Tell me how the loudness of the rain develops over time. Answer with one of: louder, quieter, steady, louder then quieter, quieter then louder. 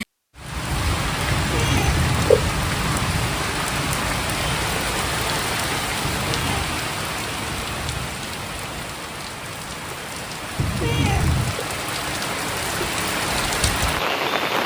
quieter then louder.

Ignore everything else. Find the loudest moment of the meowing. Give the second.
2 s.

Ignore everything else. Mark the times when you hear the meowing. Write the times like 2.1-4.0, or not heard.
1.3-3.3, 6.0-6.8, 10.6-11.7.